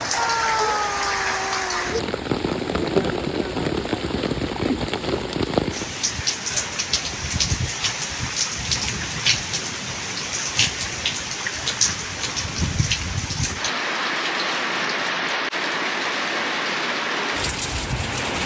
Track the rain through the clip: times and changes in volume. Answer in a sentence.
The rain can be heard from 0.0 to 18.4 s, at a steady volume.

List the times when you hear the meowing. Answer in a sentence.
The meowing can be heard from 0.1 to 2.0 s and from 14.7 to 15.3 s.